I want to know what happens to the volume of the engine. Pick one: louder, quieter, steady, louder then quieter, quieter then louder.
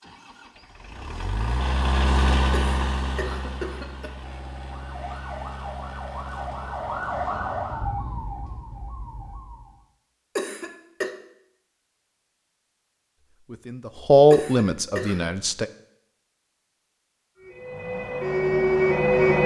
louder then quieter.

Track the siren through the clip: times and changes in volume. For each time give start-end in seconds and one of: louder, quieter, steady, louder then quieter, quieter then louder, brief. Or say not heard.
4.7-9.8 louder then quieter
17.4-19.4 brief.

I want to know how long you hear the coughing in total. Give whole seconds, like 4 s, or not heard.
3 s.